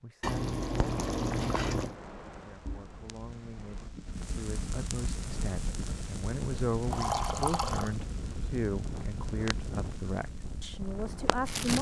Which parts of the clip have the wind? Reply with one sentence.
The wind can be heard from 5.1 to 11.7 s.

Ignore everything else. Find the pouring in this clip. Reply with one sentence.
You can hear the pouring from 0.2 to 1.9 s and from 6.9 to 8.0 s.